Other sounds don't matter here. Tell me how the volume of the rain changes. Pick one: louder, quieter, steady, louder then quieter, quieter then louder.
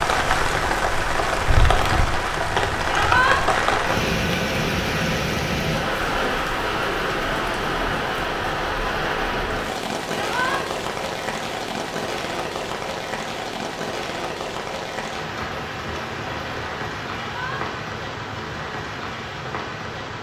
quieter.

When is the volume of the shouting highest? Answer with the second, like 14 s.
3 s.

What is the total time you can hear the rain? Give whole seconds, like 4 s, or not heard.
20 s.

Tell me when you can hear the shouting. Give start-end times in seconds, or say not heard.
2.9-3.4, 10.1-10.6, 17.1-17.6.